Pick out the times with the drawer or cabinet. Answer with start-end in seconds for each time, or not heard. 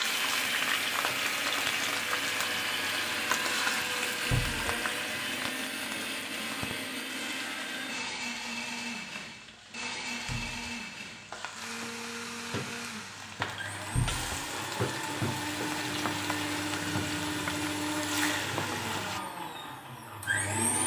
4.3-4.8, 10.2-10.8, 13.9-14.4.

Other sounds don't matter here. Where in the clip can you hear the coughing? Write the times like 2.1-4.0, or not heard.
not heard.